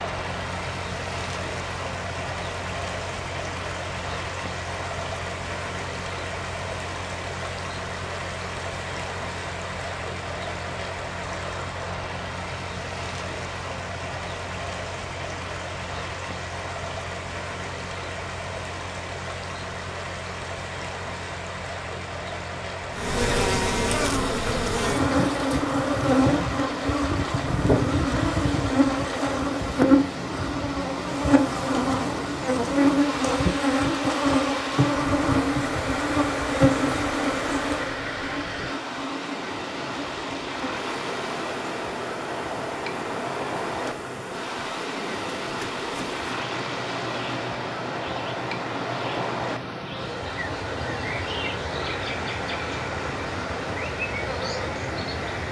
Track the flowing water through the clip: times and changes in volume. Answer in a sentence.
You can hear the flowing water from 0.0 to 55.4 s, at a steady volume.